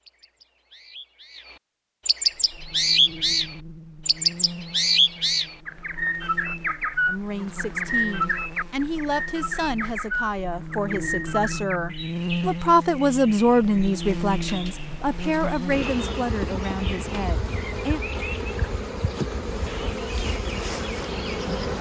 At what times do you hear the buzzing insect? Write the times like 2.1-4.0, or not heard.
2.3-21.7.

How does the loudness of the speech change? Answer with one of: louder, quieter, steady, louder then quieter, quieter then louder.
louder then quieter.